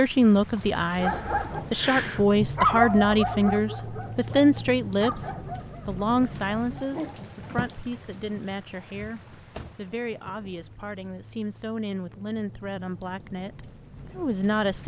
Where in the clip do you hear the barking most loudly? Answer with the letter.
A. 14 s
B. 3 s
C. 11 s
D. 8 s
B.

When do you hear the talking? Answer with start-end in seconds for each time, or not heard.
0.0-14.8.